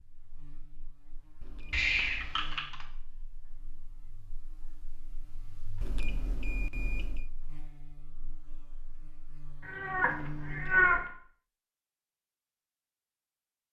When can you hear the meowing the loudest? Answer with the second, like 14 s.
11 s.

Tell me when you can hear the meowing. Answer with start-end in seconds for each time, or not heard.
1.7-2.9, 9.7-11.0.